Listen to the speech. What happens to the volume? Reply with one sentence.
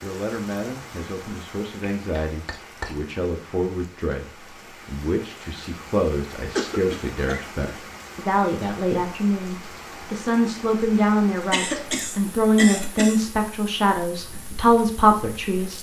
The loudness of the speech goes up.